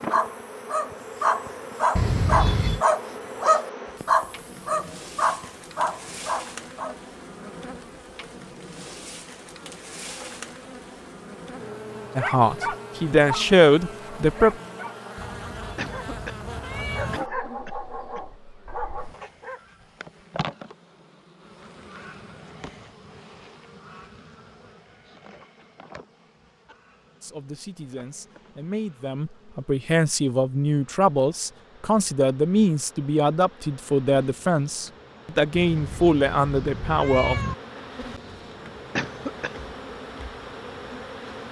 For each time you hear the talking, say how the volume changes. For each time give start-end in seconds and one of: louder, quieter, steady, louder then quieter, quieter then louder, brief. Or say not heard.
12.2-14.6 brief
27.2-37.5 louder.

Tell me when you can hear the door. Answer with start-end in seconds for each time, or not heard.
not heard.